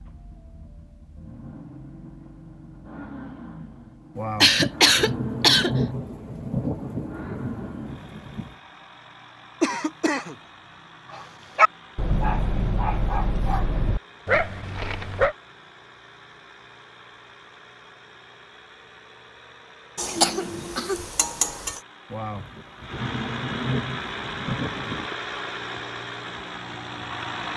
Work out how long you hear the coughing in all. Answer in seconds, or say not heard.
4 s.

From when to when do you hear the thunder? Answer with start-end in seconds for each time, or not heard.
4.2-8.6, 22.1-25.1.